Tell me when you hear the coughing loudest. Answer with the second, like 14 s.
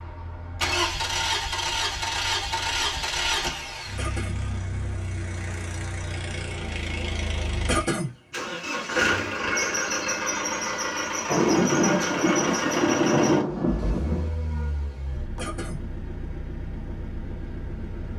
8 s.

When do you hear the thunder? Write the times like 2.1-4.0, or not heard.
11.2-14.3.